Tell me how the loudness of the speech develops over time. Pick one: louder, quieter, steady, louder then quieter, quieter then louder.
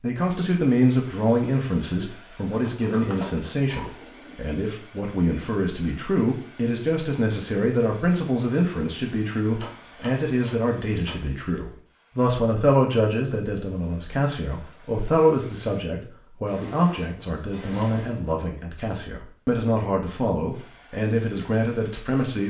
steady.